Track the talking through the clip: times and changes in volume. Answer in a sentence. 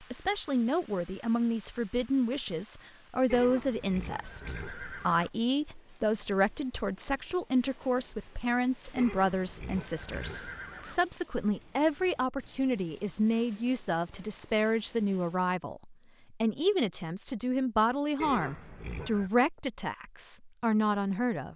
You can hear the talking from 0.1 to 21.5 s, at a steady volume.